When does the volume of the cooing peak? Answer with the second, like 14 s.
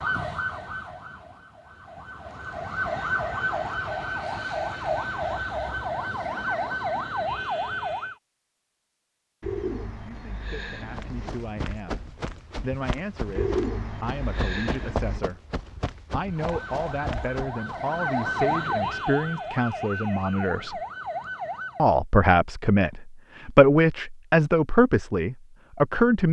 14 s.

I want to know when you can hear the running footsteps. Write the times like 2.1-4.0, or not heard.
10.8-17.8.